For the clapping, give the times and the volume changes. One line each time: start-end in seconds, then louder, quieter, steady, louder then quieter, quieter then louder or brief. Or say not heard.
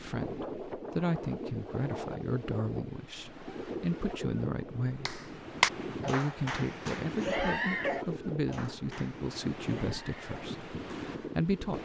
5.0-11.5 quieter.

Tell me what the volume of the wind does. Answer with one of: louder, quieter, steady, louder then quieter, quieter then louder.
steady.